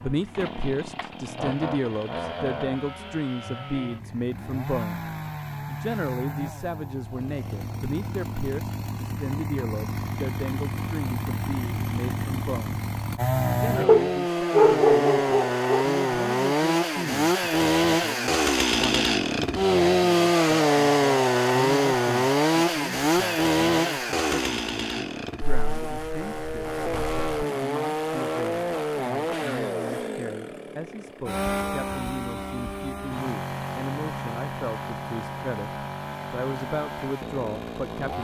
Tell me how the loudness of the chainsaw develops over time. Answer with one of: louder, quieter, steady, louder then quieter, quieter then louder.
louder then quieter.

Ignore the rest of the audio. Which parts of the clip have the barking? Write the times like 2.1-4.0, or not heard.
13.8-15.8.